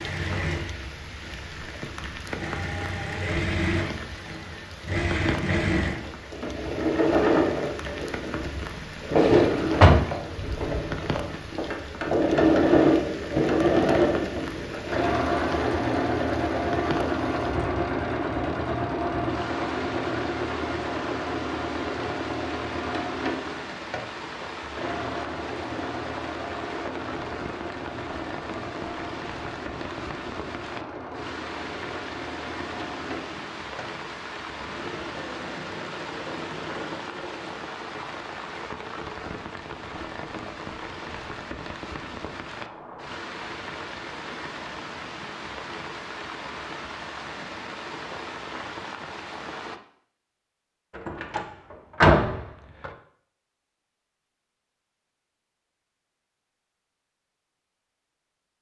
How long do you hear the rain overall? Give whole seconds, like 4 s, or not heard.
50 s.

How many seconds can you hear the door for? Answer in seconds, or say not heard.
3 s.